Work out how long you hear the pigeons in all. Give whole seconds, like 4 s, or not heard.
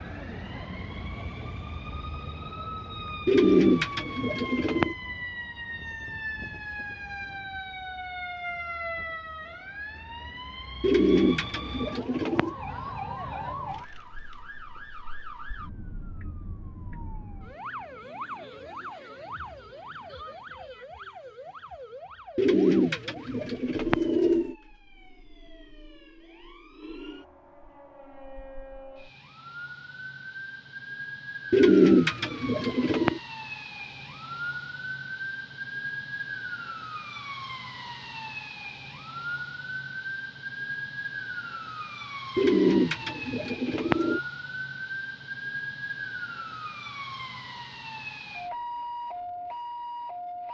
9 s.